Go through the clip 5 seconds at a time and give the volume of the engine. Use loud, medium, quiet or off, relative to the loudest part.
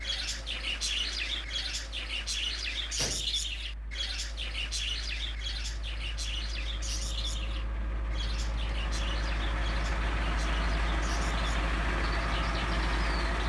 quiet, medium, loud.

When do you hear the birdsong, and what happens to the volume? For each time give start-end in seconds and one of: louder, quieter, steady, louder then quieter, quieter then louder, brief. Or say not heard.
0.0-13.3 quieter.